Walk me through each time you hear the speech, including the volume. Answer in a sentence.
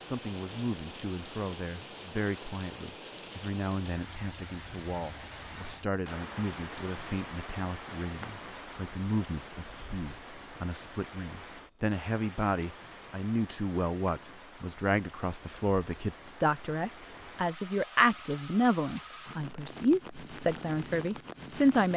The speech can be heard from 0.0 to 21.9 s, getting louder.